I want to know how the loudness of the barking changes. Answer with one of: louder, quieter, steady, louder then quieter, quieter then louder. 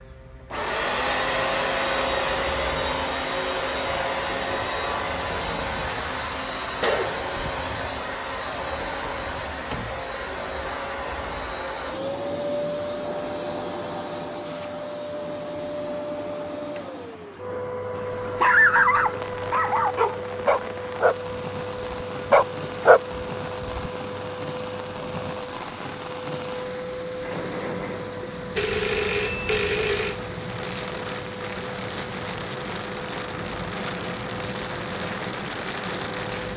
louder.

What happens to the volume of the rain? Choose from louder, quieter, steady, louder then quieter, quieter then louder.
louder.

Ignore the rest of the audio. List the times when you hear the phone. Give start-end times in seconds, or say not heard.
6.8-7.5, 28.6-30.1.